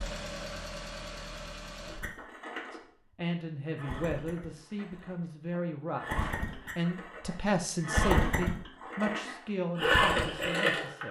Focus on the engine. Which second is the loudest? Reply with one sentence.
The volume of the engine peaks at 10 seconds.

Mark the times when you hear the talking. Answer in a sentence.
The talking can be heard from 2.7 to 11.0 s.